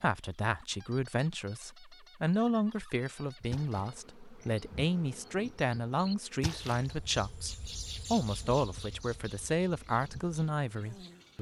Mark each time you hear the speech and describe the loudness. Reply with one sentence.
The speech can be heard from 0.0 to 11.3 s, at a steady volume.